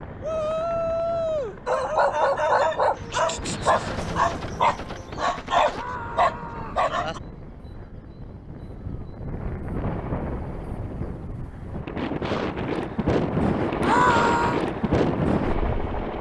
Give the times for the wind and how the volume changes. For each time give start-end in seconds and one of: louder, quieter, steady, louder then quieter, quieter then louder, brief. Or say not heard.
0.0-16.1 louder.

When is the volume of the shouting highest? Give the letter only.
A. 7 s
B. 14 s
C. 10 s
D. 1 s
B.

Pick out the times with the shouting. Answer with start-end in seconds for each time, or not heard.
0.2-1.6, 5.7-6.8, 13.8-14.6.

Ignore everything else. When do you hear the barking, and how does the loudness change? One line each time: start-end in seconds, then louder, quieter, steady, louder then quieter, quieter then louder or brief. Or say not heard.
1.6-7.2 steady.